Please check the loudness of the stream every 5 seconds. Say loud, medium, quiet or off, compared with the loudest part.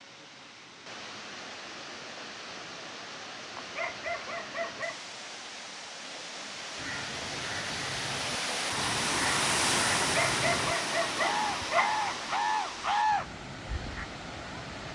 medium, loud, loud.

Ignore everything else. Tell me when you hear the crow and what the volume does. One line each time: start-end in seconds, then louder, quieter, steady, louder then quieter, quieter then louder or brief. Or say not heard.
6.8-14.1 louder.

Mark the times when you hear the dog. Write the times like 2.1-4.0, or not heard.
3.5-5.0, 10.1-12.3.